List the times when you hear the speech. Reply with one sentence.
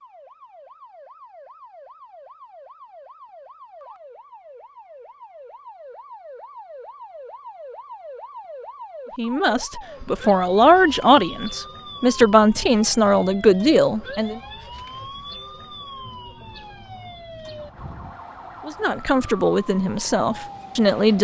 You can hear the speech from 9.2 to 14.4 s and from 18.6 to 21.1 s.